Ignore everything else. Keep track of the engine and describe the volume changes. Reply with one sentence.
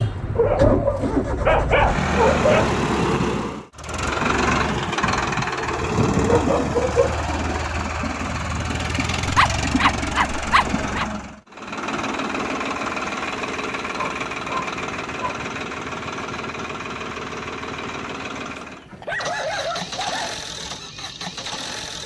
The volume of the engine goes down.